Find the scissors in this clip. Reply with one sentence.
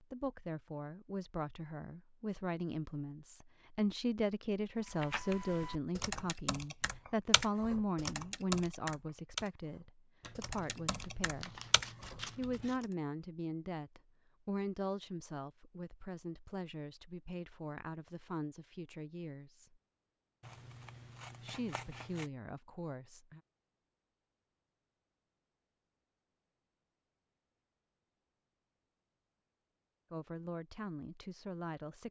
You can hear the scissors from 10.2 to 12.8 s and from 20.4 to 22.3 s.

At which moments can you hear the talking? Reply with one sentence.
The talking can be heard from 0.0 to 11.6 s, from 12.3 to 19.7 s, from 21.4 to 23.4 s and from 30.1 to 32.0 s.